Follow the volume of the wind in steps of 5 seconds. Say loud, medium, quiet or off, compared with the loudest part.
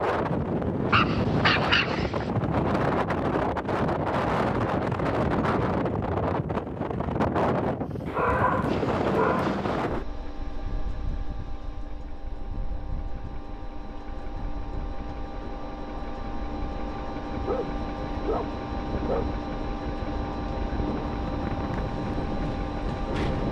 loud, loud, quiet, quiet, medium.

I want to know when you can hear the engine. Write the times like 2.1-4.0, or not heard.
8.7-23.4.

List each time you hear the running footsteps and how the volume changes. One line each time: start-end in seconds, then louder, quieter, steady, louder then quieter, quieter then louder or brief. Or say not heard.
not heard.